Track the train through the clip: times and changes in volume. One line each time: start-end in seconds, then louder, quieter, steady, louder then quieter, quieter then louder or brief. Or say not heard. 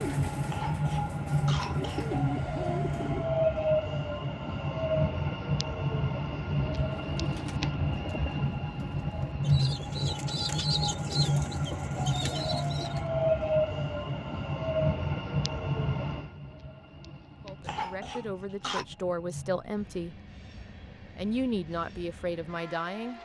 0.0-23.2 quieter.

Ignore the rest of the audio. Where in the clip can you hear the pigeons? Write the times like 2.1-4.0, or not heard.
0.0-3.3, 7.0-13.1.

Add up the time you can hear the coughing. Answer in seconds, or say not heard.
3 s.